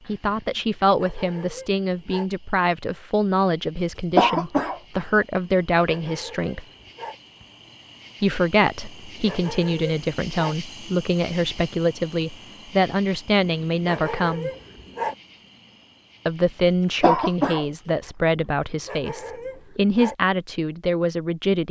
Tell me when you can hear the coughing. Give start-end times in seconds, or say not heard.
3.8-5.2, 16.6-17.6.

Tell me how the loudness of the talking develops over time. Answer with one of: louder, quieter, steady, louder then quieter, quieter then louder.
steady.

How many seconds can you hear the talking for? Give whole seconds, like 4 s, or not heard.
18 s.